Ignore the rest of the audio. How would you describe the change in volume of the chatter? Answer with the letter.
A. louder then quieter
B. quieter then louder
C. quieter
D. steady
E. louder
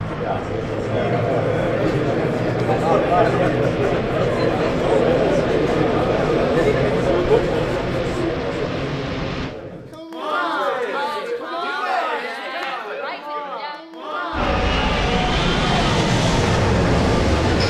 C.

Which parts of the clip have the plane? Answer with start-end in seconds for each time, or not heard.
0.0-9.6, 14.3-17.6.